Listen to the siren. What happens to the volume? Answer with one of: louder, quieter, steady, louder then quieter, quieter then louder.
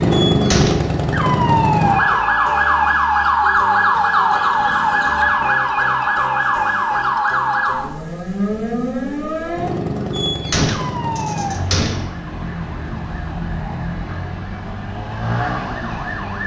quieter.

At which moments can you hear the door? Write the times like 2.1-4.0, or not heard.
0.1-0.9, 10.1-12.1.